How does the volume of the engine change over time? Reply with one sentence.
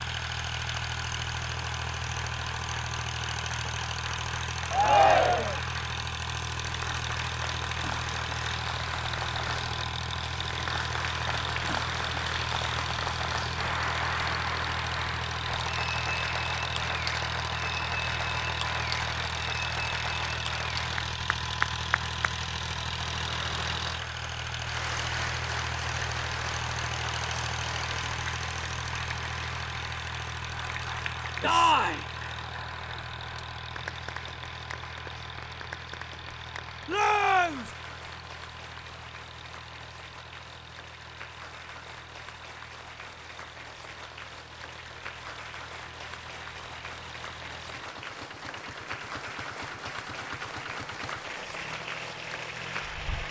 The volume of the engine goes down.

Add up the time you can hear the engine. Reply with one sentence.
The engine can be heard for 53 seconds in total.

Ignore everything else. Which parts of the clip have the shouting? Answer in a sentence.
You can hear the shouting from 4.7 to 5.6 s, from 31.4 to 32.0 s and from 36.9 to 37.7 s.